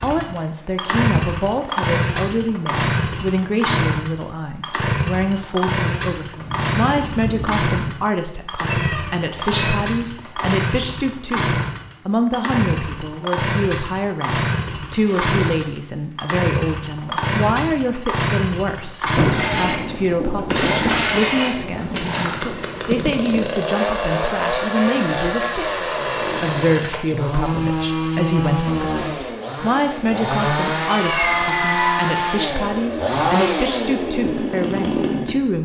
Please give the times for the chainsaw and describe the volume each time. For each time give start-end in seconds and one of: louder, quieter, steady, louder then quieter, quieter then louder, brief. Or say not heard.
0.0-35.5 steady.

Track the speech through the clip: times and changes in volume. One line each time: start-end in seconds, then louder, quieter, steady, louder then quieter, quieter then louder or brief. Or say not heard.
0.0-35.5 steady.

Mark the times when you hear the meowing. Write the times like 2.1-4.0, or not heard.
8.7-9.8, 15.1-15.7, 30.4-32.1.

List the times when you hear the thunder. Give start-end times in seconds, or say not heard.
6.4-7.7, 19.1-23.6.